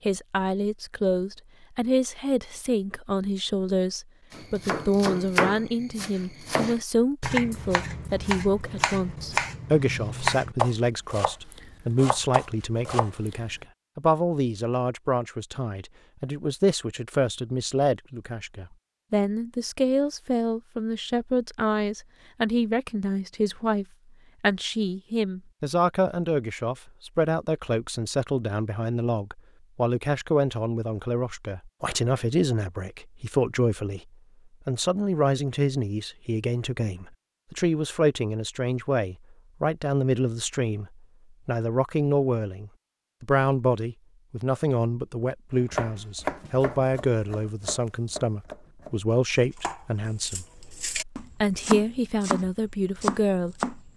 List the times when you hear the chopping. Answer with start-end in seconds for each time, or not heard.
4.3-13.5, 45.6-53.8.